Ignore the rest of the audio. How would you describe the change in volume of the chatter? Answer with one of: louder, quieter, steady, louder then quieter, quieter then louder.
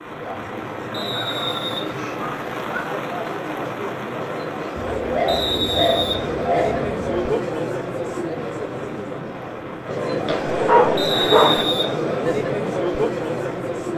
louder.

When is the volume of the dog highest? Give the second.
11 s.